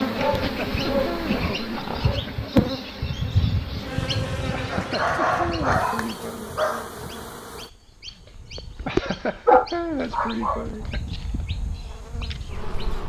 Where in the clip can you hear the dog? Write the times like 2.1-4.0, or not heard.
0.1-2.2, 4.7-7.0, 9.4-10.7.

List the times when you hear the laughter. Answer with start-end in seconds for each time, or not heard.
0.1-2.5, 4.5-6.5, 8.8-11.0.